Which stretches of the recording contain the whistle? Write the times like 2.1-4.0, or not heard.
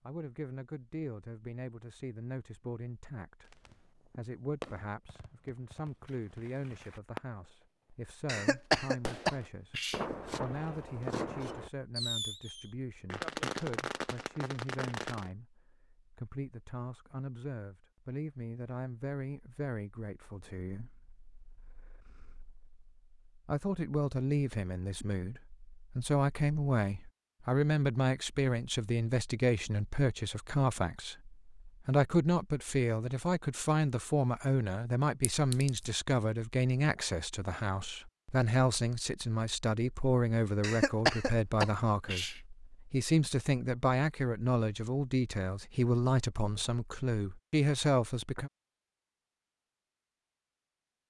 not heard.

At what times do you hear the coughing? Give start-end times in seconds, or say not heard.
8.2-10.1, 40.6-42.4.